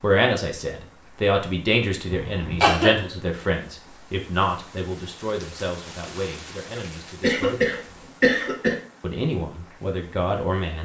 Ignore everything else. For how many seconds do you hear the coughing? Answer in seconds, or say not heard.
3 s.